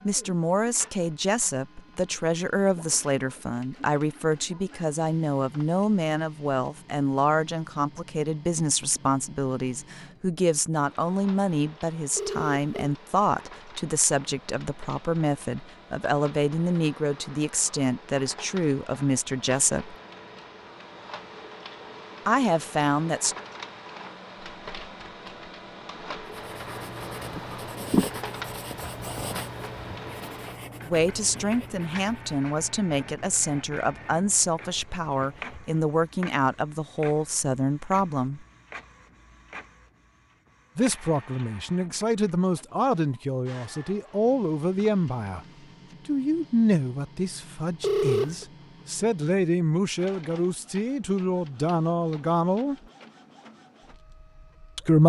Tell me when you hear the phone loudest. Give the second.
48 s.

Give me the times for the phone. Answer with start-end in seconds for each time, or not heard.
12.2-12.9, 47.8-48.5.